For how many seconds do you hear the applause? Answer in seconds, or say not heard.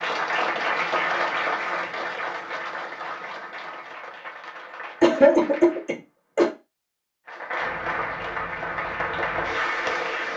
9 s.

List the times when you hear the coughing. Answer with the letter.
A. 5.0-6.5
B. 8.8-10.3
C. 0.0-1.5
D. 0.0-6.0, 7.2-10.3
A.